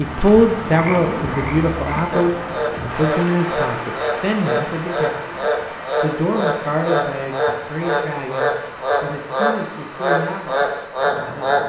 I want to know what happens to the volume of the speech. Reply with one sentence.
The volume of the speech goes down.